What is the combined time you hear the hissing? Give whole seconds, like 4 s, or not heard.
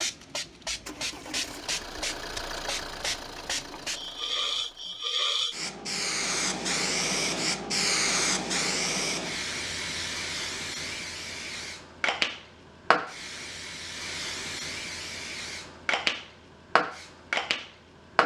18 s.